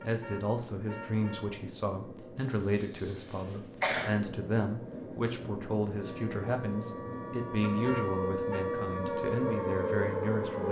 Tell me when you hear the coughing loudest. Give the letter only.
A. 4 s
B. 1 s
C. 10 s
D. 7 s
A.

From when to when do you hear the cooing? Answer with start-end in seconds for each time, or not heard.
not heard.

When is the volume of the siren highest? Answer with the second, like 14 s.
10 s.